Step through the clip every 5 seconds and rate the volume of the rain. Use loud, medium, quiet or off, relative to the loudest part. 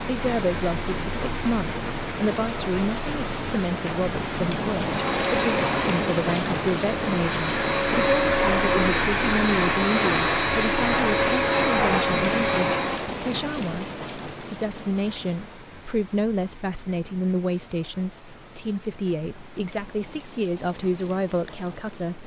loud, loud, loud, quiet, quiet.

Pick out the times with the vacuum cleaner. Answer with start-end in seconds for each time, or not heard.
4.8-13.2.